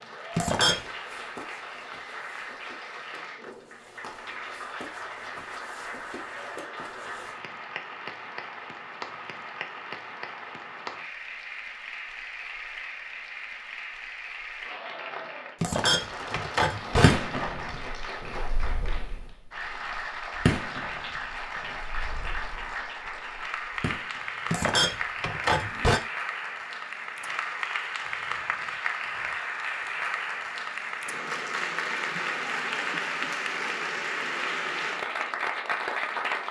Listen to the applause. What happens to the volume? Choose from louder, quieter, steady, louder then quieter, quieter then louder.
louder.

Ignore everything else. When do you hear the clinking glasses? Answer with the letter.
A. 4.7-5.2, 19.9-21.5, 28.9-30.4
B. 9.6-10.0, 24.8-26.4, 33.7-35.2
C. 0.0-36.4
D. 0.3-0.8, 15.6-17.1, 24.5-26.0
D.